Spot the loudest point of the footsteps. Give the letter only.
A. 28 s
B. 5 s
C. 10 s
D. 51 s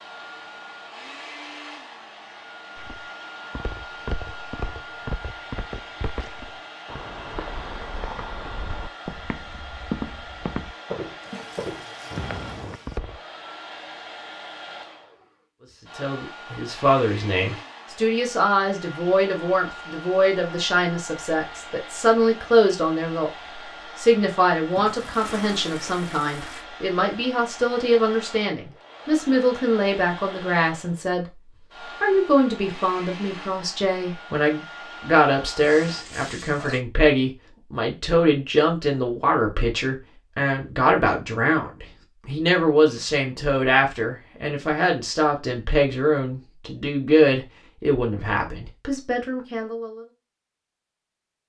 C.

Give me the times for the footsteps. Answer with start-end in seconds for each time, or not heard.
2.8-13.2.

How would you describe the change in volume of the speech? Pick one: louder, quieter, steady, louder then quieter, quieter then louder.
steady.